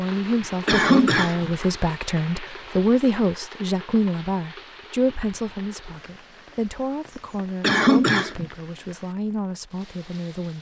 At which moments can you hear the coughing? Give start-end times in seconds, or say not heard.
0.7-1.5, 7.6-8.4.